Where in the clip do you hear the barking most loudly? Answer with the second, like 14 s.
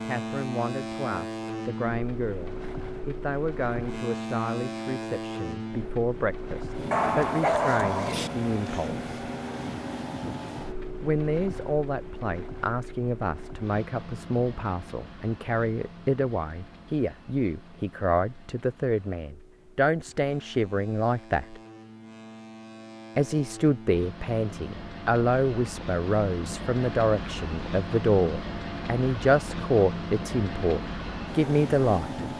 8 s.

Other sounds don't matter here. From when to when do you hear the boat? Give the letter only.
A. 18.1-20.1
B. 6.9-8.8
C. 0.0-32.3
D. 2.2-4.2
C.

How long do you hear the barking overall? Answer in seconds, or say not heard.
2 s.